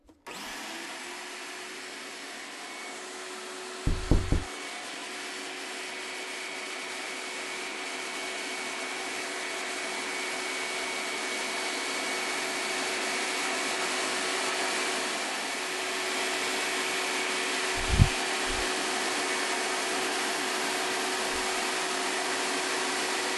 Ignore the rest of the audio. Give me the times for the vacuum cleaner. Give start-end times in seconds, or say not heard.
0.0-23.3.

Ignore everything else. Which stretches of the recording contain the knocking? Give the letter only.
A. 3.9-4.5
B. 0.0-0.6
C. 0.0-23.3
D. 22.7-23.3
A.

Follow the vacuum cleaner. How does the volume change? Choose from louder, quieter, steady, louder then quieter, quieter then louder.
louder.